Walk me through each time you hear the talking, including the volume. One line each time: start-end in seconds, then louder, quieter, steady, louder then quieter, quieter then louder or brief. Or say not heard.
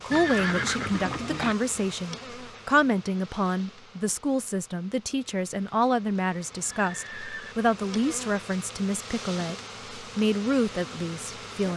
0.0-11.7 steady.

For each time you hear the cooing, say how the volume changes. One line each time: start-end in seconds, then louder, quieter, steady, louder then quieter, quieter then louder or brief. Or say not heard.
not heard.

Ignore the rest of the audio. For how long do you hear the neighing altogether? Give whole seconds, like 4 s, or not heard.
2 s.